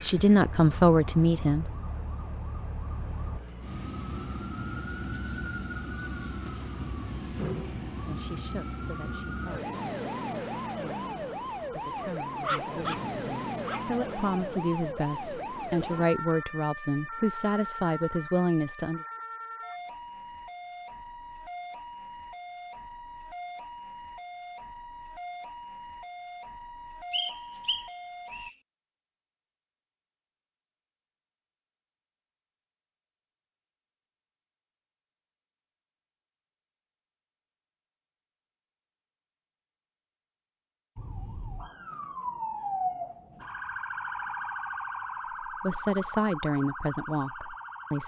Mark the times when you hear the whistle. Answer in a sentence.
You can hear the whistle from 27.1 to 28.6 s.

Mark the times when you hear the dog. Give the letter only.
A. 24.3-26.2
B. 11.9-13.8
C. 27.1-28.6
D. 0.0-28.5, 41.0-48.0
B.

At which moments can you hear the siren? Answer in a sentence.
The siren can be heard from 0.0 to 28.5 s and from 41.0 to 48.0 s.